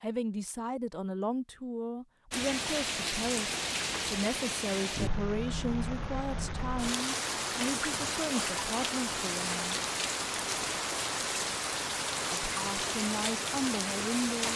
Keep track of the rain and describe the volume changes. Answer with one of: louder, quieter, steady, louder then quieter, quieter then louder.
steady.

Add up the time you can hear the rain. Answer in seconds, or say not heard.
12 s.